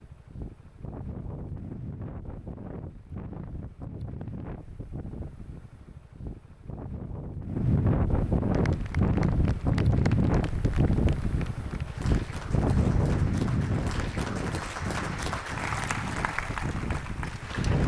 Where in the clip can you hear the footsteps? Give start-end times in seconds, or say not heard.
not heard.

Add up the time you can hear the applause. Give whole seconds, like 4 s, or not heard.
9 s.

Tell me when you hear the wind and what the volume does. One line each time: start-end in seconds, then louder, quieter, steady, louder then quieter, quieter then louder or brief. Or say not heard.
0.0-17.8 louder then quieter.